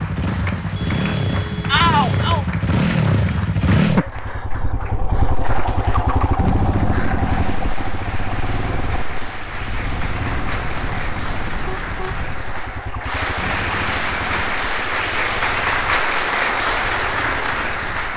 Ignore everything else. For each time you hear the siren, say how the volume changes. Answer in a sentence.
The siren can't be heard in this clip.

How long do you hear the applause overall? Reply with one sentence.
You can hear the applause for 18 seconds altogether.